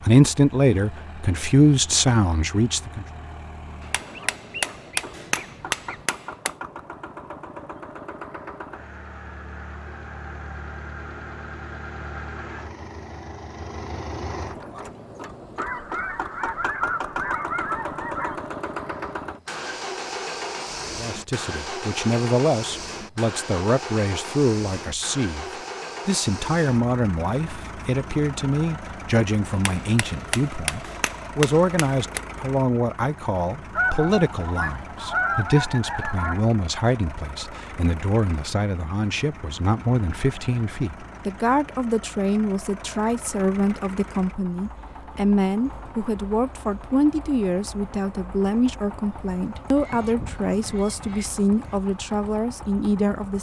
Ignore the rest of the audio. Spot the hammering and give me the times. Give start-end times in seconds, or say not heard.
3.8-6.5, 29.5-32.2.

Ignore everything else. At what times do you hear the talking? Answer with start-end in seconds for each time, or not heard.
0.1-3.0, 20.9-53.3.